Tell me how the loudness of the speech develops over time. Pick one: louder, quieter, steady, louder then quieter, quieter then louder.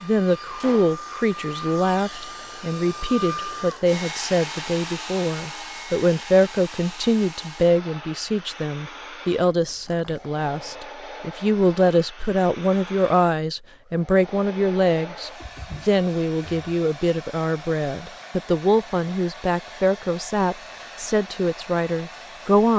steady.